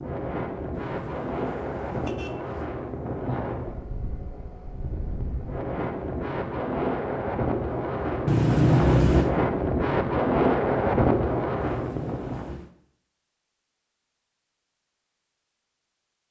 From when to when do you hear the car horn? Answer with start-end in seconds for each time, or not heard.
0.7-2.8, 8.2-9.3, 11.6-12.8.